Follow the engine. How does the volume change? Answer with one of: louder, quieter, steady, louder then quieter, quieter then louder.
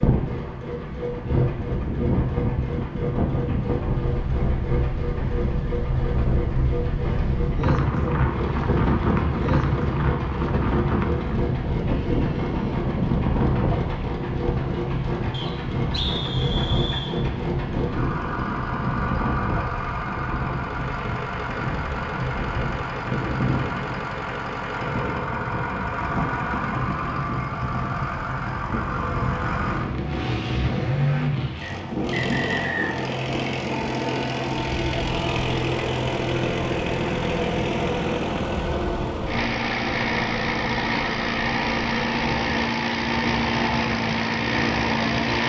louder.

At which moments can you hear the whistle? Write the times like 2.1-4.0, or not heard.
15.3-17.1, 31.6-32.9.